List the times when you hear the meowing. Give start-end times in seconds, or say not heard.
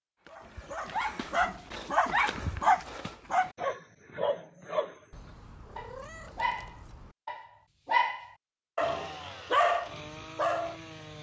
5.1-7.2.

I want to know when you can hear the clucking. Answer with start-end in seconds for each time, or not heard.
not heard.